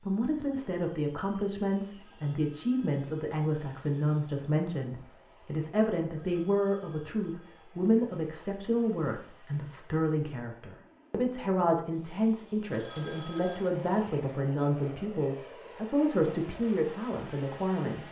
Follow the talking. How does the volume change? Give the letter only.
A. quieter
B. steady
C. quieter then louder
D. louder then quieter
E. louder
B.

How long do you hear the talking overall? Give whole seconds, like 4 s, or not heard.
18 s.